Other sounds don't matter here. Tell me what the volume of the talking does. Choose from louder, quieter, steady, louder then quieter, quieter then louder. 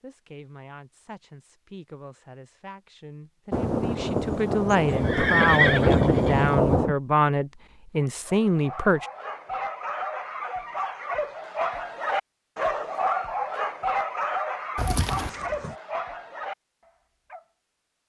louder.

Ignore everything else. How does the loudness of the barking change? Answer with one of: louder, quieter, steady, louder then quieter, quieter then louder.
louder then quieter.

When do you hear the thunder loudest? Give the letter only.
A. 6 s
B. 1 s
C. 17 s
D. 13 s
A.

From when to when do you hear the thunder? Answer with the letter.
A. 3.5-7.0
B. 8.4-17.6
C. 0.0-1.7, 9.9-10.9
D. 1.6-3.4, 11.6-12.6
A.